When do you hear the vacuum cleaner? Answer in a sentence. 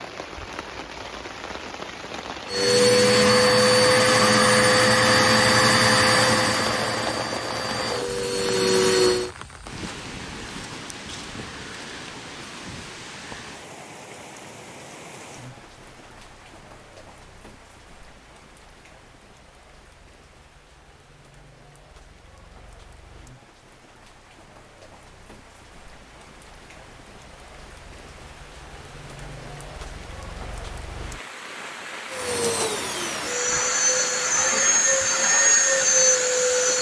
You can hear the vacuum cleaner from 2.5 to 9.3 s and from 32.0 to 36.7 s.